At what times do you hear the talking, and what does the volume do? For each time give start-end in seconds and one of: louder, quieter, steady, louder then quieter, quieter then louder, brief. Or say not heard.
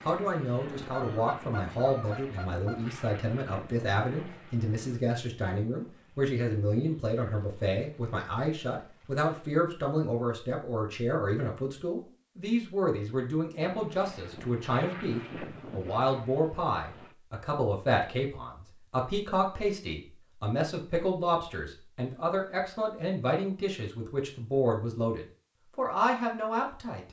0.1-27.0 steady.